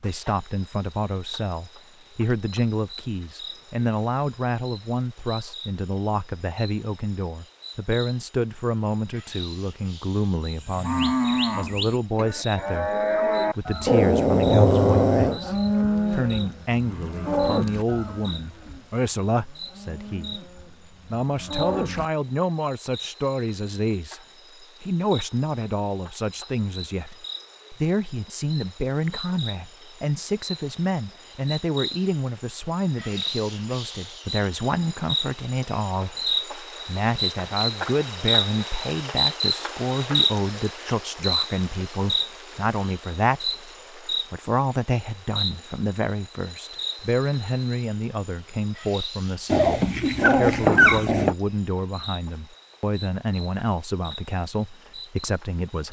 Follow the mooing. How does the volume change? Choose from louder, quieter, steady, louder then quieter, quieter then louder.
quieter then louder.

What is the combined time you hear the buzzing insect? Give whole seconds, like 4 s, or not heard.
56 s.